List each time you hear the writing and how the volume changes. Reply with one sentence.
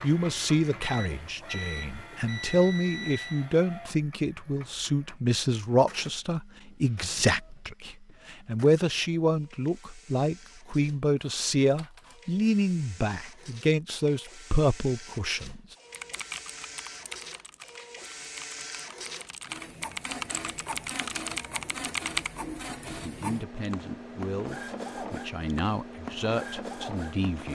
The writing can't be heard in this clip.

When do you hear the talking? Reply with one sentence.
You can hear the talking from 0.0 to 15.6 s and from 22.9 to 27.4 s.